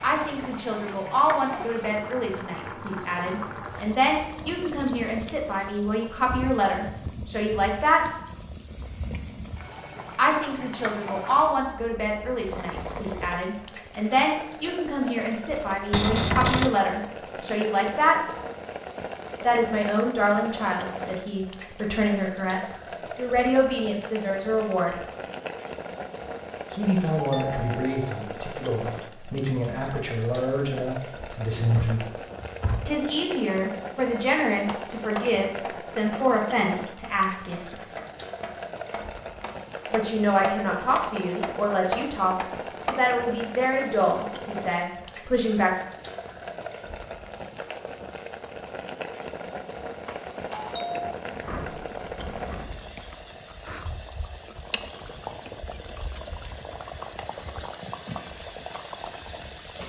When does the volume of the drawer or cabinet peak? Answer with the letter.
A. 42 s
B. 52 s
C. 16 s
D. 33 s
C.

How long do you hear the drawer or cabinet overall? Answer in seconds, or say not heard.
4 s.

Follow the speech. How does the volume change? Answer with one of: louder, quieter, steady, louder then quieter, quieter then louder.
steady.